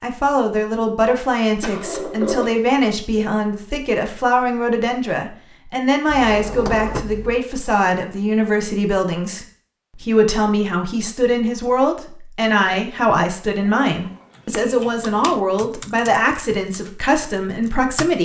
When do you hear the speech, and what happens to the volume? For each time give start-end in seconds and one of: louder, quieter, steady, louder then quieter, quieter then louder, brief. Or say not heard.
0.0-18.1 steady.